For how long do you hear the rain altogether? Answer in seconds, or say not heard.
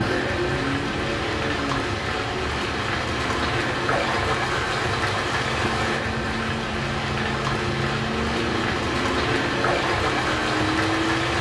11 s.